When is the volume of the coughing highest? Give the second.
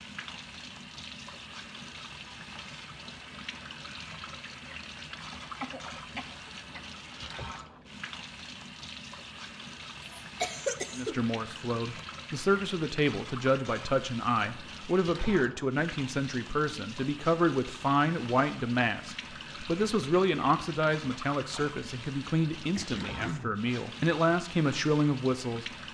11 s.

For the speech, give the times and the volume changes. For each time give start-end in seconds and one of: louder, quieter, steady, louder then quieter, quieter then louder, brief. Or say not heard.
10.9-25.6 steady.